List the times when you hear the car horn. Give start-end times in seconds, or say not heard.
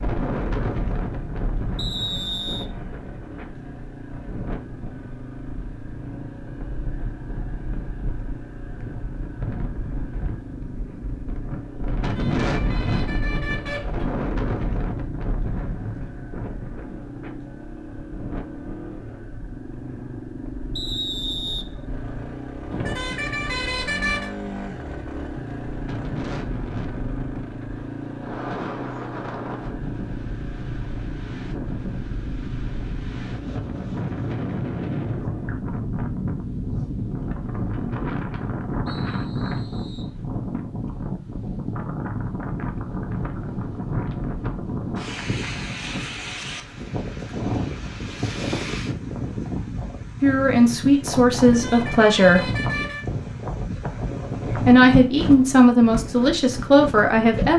11.9-14.1, 22.7-24.3, 51.4-53.0.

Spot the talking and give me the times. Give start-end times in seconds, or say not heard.
50.2-52.4, 54.5-57.5.